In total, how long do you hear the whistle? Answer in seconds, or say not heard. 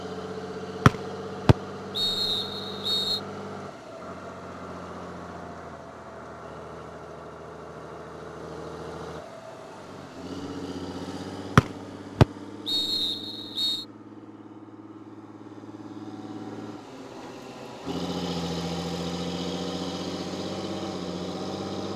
5 s.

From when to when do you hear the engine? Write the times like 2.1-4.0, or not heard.
0.0-21.9.